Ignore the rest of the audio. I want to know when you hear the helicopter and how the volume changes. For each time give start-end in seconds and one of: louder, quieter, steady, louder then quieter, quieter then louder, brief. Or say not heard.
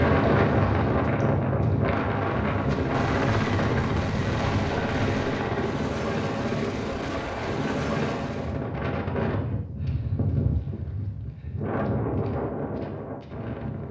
0.0-8.6 louder.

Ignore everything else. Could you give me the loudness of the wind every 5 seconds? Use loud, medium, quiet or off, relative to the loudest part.
loud, medium, medium.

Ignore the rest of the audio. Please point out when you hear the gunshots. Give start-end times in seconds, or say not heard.
2.9-5.5.